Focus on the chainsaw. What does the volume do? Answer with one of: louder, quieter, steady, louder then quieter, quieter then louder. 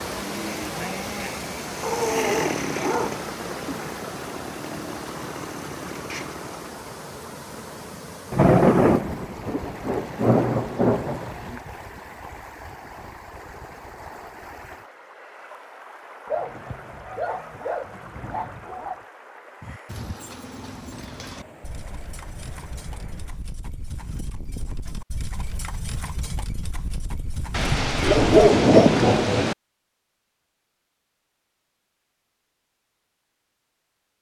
louder then quieter.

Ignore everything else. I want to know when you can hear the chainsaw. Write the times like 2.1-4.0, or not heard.
0.0-6.8.